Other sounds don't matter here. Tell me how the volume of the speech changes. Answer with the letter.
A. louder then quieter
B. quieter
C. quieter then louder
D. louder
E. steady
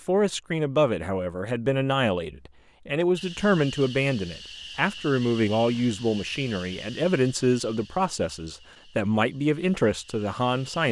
E.